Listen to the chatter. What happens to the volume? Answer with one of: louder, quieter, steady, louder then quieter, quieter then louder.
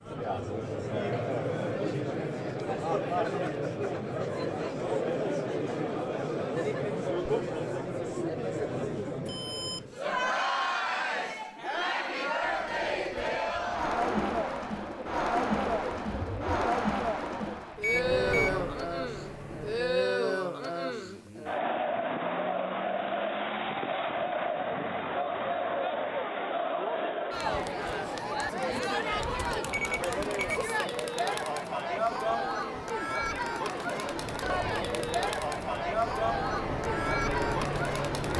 steady.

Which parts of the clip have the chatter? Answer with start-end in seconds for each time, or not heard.
0.0-38.3.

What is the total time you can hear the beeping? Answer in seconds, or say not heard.
2 s.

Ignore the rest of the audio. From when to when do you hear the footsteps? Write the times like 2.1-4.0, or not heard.
not heard.